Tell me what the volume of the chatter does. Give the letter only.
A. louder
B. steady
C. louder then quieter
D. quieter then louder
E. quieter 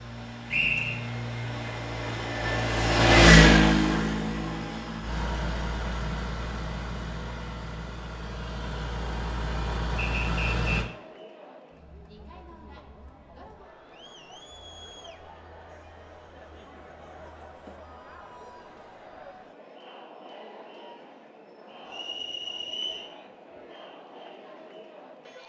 B.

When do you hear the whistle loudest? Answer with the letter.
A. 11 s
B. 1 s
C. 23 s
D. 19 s
B.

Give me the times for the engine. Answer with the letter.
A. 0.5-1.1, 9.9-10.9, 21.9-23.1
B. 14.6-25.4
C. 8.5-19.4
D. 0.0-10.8
D.